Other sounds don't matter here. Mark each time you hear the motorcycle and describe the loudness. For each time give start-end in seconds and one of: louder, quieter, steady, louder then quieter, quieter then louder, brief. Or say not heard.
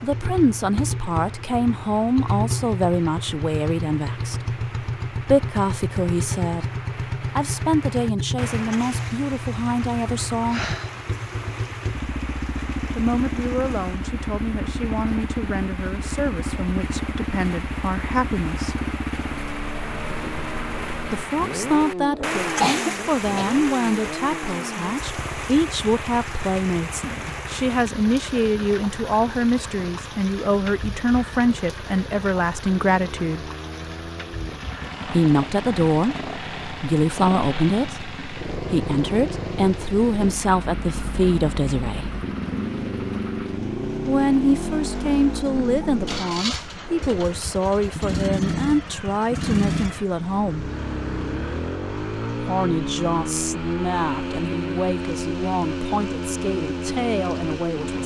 0.0-58.0 quieter then louder.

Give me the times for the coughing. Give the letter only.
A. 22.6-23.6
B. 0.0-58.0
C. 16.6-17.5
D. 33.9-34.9
A.